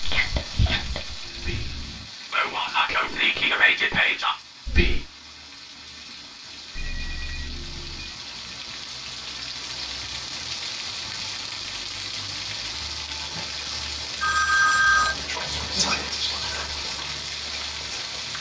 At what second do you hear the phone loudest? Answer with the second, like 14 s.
15 s.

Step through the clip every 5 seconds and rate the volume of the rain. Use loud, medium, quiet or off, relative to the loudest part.
medium, medium, loud, loud.